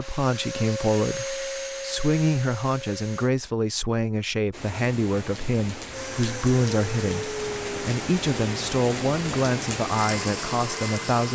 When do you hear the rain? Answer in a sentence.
You can hear the rain from 4.5 to 11.3 s.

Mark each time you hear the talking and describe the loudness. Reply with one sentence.
You can hear the talking from 0.0 to 11.3 s, at a steady volume.